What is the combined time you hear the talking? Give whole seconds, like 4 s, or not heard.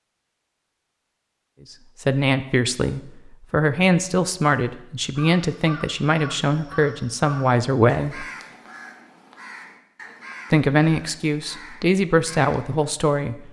9 s.